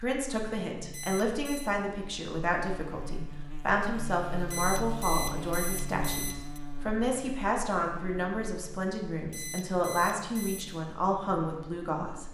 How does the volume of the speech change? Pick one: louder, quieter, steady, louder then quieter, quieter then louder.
steady.